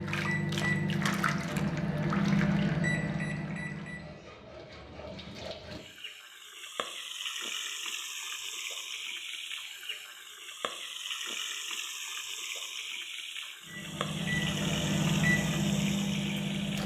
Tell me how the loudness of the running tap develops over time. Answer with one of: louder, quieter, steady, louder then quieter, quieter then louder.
quieter then louder.